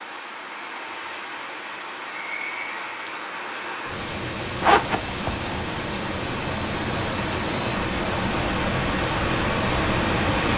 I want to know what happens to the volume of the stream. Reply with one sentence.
The loudness of the stream goes up.